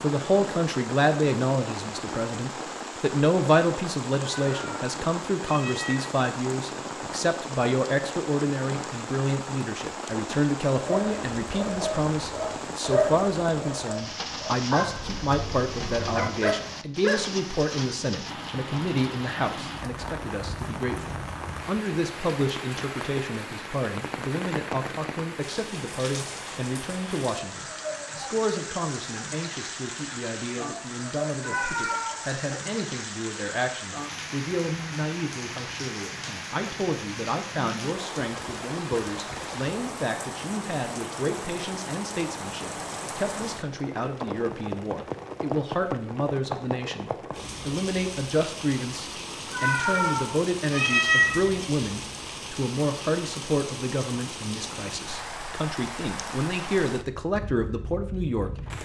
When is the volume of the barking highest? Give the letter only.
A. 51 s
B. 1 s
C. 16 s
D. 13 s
D.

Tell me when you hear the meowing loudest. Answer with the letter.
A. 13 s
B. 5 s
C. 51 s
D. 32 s
C.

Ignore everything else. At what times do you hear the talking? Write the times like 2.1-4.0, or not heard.
0.0-58.5.